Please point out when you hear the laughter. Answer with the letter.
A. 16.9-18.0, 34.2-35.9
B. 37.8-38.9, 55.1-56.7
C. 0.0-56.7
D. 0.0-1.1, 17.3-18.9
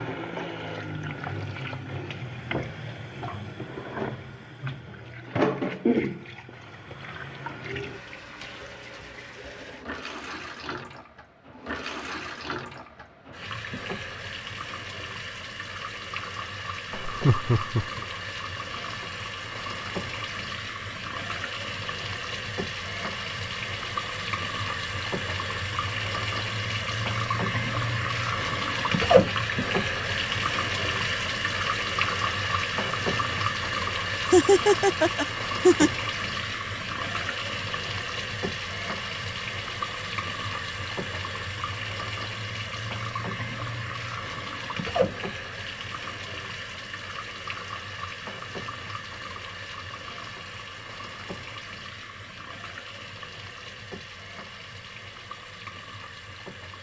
A.